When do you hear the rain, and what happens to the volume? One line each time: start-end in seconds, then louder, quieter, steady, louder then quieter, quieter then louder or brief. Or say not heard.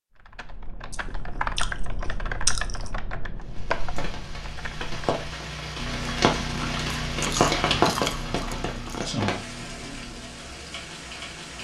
3.5-11.5 louder then quieter.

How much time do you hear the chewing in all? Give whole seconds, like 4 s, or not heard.
4 s.